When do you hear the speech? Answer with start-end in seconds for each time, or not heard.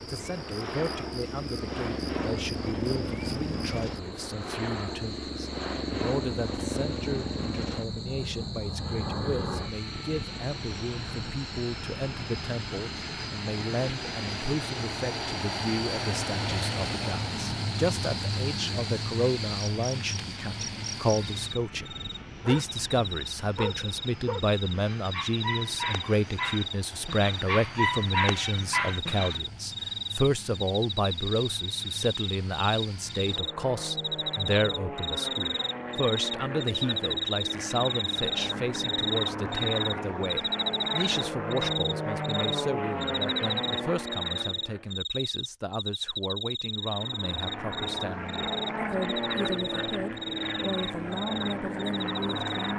0.0-52.7.